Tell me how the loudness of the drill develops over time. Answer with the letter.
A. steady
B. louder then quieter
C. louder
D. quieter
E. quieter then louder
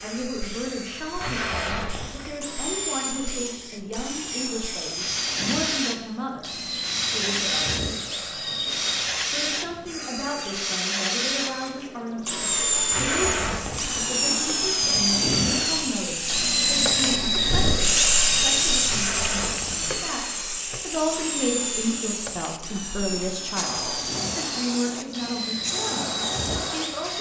B.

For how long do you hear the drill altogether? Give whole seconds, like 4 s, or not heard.
27 s.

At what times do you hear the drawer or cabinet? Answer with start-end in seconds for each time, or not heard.
not heard.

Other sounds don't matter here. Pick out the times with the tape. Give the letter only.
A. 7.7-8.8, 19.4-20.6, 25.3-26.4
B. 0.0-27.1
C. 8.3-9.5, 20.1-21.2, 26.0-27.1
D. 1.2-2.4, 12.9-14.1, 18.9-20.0
D.